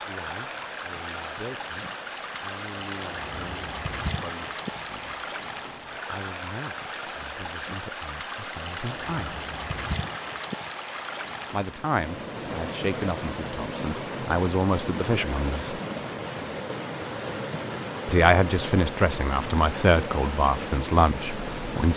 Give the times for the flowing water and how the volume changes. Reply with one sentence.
You can hear the flowing water from 0.0 to 21.9 s, at a steady volume.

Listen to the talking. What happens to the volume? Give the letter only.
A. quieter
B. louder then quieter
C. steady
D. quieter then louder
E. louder
E.